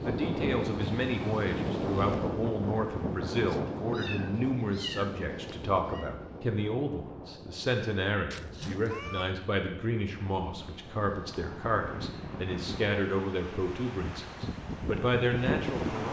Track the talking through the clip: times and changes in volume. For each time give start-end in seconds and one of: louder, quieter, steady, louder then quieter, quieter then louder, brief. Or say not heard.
0.0-16.0 steady.